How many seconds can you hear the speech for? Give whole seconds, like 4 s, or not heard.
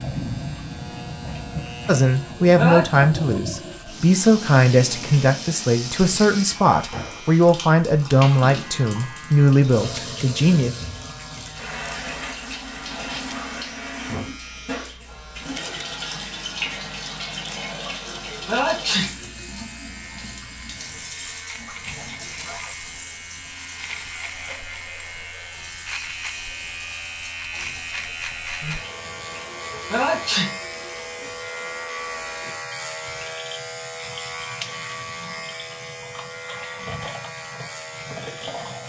9 s.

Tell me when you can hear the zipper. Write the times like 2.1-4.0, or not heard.
22.0-22.8.